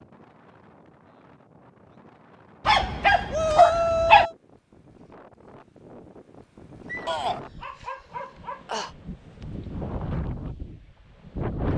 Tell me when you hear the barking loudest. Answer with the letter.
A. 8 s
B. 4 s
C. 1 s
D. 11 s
B.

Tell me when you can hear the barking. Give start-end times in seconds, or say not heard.
2.6-4.3, 6.8-8.9.